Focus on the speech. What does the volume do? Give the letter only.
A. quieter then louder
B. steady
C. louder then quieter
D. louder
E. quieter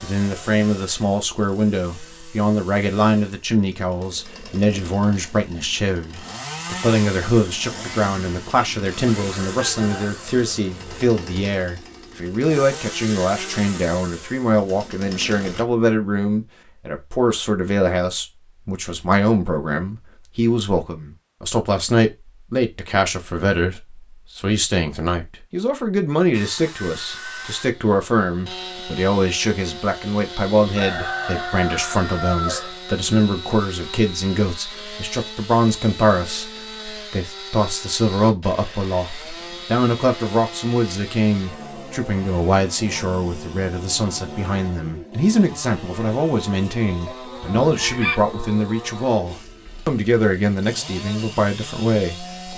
B.